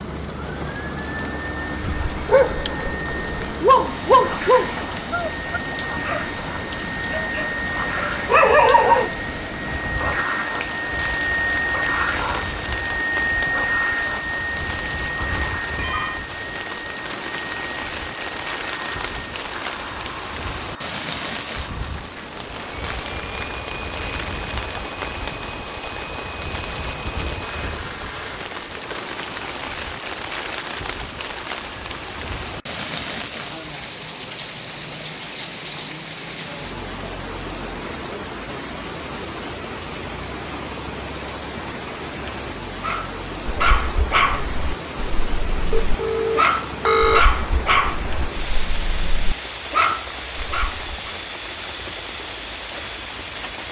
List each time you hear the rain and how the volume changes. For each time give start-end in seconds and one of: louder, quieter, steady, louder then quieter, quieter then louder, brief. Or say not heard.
0.0-53.6 steady.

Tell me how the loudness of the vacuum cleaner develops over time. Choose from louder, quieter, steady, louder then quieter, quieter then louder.
louder then quieter.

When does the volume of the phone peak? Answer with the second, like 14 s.
47 s.